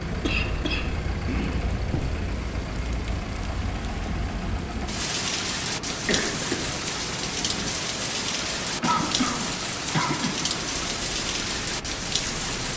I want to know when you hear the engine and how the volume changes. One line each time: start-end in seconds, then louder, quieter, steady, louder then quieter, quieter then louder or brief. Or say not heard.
0.0-12.7 steady.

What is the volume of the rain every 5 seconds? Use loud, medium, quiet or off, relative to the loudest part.
medium, loud, loud.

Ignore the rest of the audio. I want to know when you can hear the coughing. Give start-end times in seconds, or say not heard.
0.2-2.0, 6.0-6.8, 8.8-10.5.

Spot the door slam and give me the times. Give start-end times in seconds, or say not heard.
not heard.